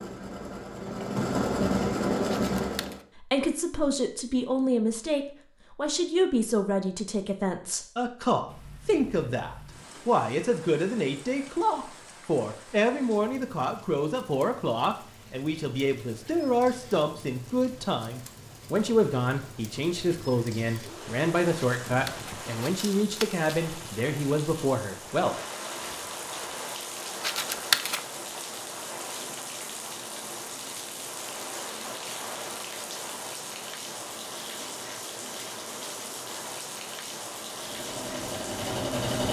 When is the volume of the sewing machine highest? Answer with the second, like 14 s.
2 s.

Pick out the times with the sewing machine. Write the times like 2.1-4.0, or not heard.
0.0-3.0, 37.5-39.2.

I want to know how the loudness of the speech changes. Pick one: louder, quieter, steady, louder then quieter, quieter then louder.
steady.